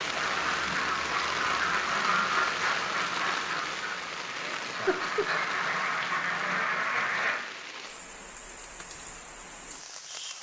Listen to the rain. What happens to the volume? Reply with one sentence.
The volume of the rain goes down.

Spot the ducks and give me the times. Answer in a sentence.
The ducks can be heard from 0.1 to 7.3 s.